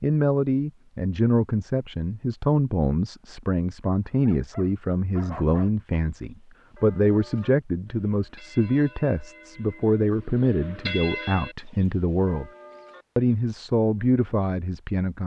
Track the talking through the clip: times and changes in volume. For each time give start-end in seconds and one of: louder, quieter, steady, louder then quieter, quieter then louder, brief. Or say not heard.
0.0-12.5 steady
13.2-15.2 brief.